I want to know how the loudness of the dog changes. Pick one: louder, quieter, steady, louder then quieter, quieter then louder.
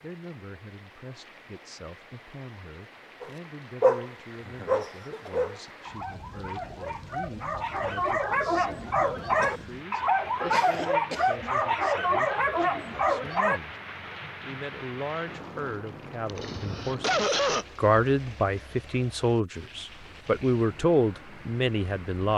quieter then louder.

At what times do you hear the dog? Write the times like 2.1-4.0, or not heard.
3.2-13.6.